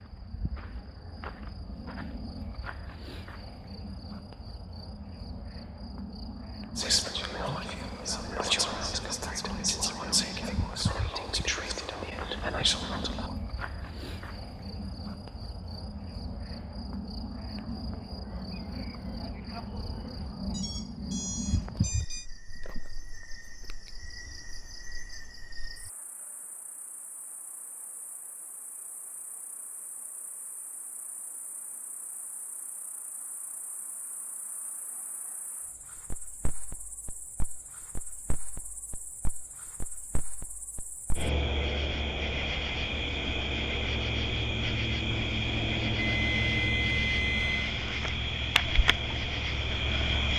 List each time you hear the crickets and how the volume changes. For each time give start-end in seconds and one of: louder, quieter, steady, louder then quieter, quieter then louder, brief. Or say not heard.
0.0-50.3 quieter then louder.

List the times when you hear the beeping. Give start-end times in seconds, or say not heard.
20.5-22.2, 46.0-47.8.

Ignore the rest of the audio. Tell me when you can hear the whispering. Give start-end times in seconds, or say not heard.
6.8-13.3.